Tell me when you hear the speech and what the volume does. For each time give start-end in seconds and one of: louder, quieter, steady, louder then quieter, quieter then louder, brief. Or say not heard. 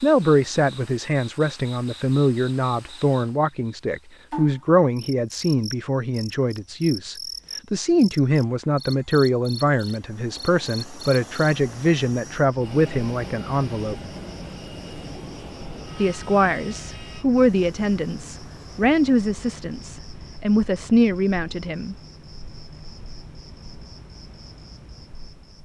0.0-13.9 steady
15.9-21.9 quieter then louder.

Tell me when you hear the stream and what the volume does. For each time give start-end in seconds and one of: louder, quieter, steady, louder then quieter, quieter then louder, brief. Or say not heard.
not heard.